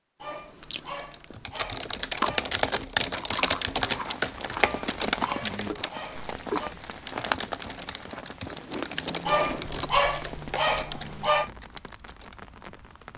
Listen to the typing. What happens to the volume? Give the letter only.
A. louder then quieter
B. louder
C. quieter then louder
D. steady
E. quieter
E.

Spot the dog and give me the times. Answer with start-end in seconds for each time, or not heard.
0.2-2.5, 4.5-6.8, 9.2-11.5.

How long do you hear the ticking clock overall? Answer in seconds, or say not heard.
not heard.